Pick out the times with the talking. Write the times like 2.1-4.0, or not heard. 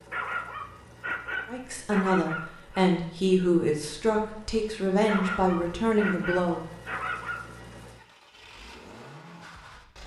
1.4-6.6.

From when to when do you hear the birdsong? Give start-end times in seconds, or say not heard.
not heard.